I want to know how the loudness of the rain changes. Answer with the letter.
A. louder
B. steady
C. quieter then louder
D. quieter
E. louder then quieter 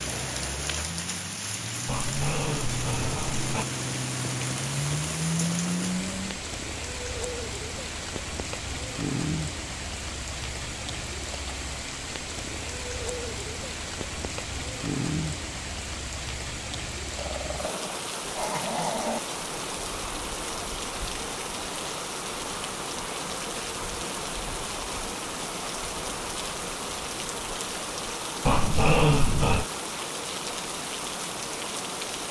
B.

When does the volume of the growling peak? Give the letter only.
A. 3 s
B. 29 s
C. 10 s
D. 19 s
B.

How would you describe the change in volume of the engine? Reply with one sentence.
The loudness of the engine goes up.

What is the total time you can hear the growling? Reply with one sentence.
The growling can be heard for 5 seconds in total.